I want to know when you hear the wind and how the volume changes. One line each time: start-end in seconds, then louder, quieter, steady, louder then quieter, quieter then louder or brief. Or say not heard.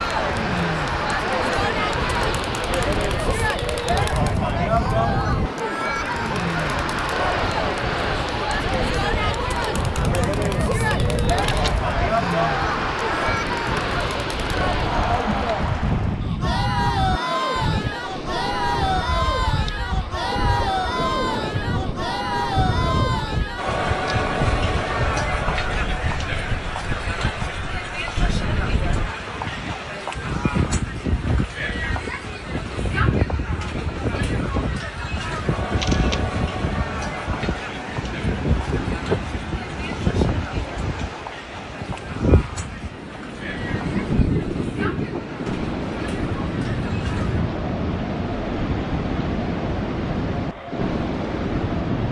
0.0-52.0 steady.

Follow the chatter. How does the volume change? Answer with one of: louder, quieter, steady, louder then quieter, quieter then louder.
quieter.